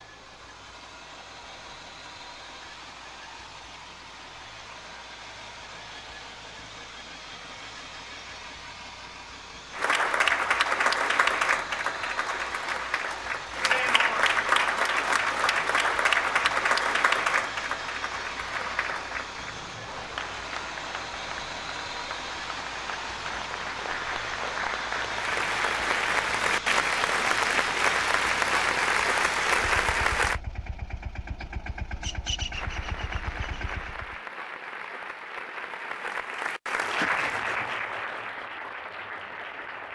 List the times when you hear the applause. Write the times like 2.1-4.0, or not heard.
9.7-30.4, 32.5-39.9.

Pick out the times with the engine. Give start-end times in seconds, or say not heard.
0.0-34.2.